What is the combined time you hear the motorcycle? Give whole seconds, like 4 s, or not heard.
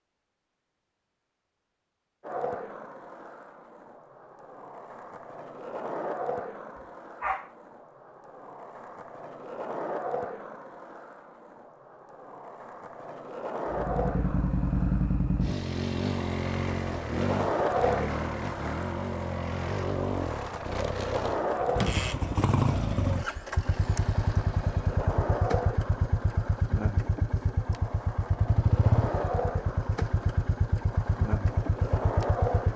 19 s.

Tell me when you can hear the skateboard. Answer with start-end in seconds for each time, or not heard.
2.2-32.7.